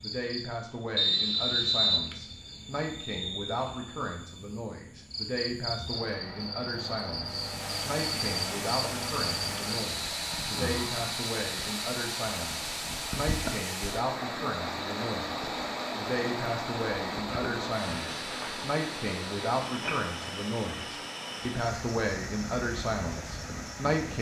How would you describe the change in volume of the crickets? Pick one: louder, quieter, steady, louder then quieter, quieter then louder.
louder then quieter.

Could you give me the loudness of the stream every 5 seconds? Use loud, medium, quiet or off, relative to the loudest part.
off, loud, loud, loud, medium.